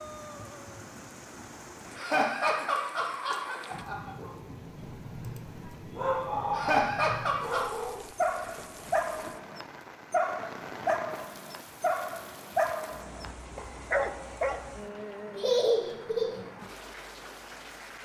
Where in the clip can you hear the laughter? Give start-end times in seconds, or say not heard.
1.9-4.2, 6.5-7.7, 15.3-16.4.